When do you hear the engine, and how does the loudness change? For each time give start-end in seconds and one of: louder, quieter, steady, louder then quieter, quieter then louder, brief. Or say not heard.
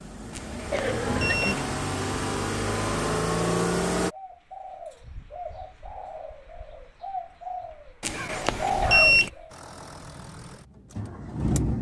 0.0-4.1 louder
9.5-11.7 brief.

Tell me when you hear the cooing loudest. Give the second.
9 s.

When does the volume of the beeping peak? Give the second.
9 s.